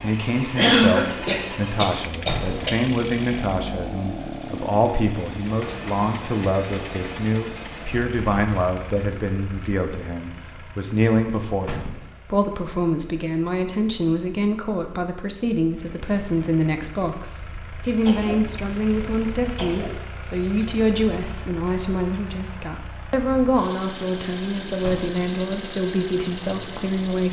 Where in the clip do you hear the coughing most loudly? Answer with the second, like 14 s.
1 s.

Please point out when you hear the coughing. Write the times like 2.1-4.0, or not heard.
0.6-2.7, 18.0-19.9.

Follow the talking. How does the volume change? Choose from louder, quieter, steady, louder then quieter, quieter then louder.
steady.